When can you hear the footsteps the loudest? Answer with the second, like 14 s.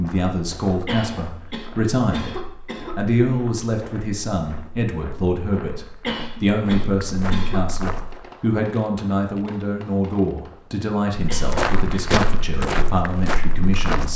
12 s.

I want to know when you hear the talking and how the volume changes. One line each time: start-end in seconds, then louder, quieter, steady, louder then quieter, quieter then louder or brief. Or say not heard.
0.0-14.1 steady.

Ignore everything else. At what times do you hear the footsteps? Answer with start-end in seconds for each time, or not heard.
0.0-8.3, 11.2-14.1.